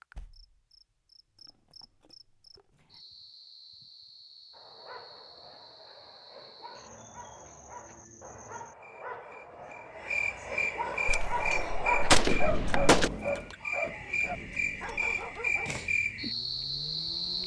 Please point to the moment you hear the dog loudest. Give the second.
12 s.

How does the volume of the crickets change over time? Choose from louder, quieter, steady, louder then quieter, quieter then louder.
louder.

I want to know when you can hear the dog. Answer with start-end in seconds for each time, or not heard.
4.5-15.8.